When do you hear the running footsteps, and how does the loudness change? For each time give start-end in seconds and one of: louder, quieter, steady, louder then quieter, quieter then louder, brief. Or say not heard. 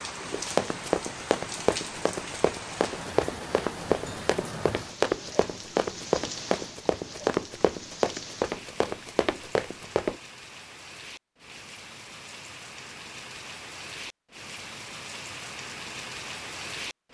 0.3-10.2 steady.